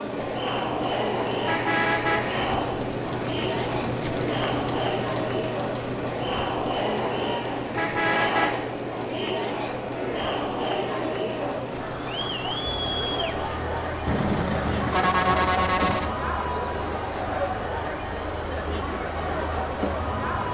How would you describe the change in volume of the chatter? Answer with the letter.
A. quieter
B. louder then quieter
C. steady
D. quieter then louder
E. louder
C.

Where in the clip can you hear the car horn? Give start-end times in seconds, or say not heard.
1.4-2.5, 7.7-8.7, 14.1-16.1.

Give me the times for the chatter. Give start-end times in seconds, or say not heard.
0.0-20.5.